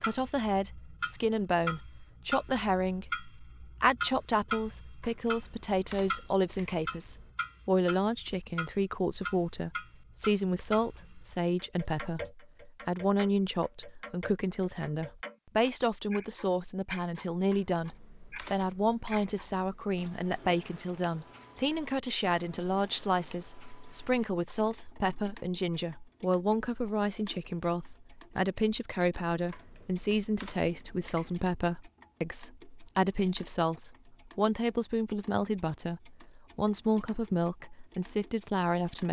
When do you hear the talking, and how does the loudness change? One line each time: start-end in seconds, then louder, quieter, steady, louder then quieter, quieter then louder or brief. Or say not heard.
0.0-39.0 steady.